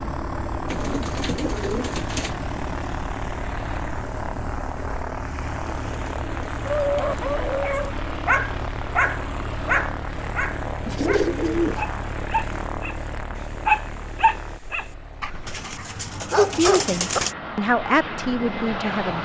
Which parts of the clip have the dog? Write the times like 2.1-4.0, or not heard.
6.7-12.9, 13.7-17.2.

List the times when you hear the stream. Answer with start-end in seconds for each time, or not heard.
not heard.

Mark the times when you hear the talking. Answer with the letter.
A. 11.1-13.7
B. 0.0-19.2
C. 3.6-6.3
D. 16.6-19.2
D.